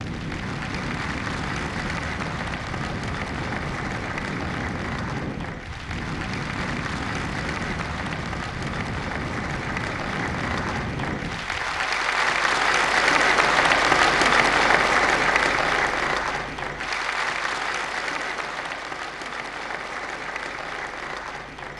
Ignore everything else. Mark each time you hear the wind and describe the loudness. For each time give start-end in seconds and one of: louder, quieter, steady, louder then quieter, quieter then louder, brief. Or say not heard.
0.0-11.9 steady.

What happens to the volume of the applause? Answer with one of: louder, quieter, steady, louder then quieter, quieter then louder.
louder then quieter.